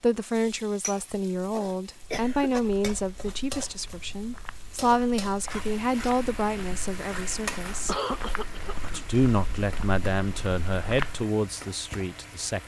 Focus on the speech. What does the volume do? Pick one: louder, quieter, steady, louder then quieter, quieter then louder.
steady.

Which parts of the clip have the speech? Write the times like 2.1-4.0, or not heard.
0.0-8.0, 8.8-12.6.